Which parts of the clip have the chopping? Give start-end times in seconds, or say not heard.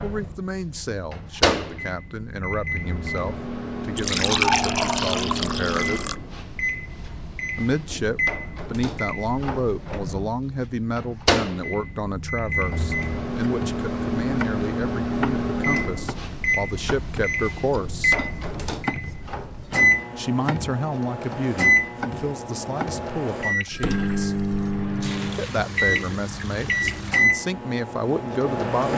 12.7-23.1.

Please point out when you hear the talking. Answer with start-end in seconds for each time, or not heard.
0.0-6.0, 7.5-18.1, 20.1-24.4, 25.4-28.9.